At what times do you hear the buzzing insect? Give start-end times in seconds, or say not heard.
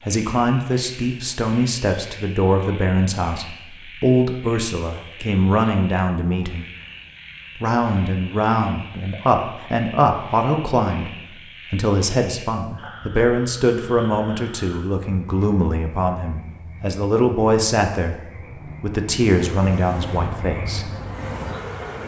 19.3-22.0.